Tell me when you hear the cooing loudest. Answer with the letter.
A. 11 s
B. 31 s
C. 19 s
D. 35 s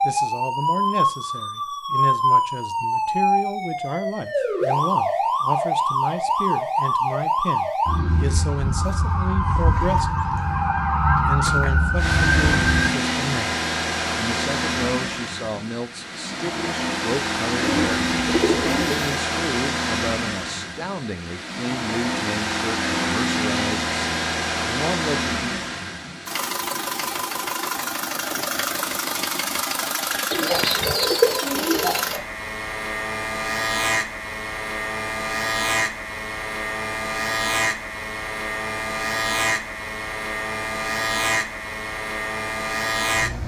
B.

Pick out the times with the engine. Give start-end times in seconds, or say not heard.
11.9-43.4.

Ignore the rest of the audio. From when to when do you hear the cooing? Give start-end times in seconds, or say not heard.
17.6-19.1, 30.3-32.2.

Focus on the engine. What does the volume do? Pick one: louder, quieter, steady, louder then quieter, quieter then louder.
steady.